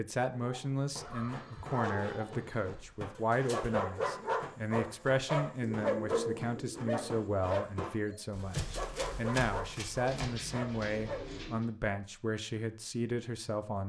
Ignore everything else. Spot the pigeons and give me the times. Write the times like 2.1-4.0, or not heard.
1.0-2.8, 5.7-7.2, 10.1-11.7.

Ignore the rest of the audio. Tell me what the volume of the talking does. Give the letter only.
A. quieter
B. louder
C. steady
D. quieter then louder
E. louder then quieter
C.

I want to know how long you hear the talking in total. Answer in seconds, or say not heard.
14 s.